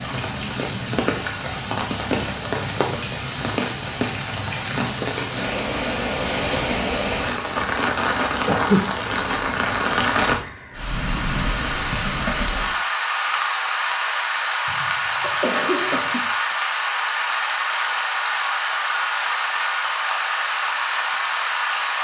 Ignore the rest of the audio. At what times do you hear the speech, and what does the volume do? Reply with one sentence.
You can't hear the speech here.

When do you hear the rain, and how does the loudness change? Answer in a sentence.
The rain can be heard from 0.0 to 21.9 s, at a steady volume.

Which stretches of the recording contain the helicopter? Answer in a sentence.
The helicopter can't be heard in this clip.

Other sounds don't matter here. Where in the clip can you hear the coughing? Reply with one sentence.
You can hear the coughing from 8.4 to 8.9 s and from 14.7 to 16.3 s.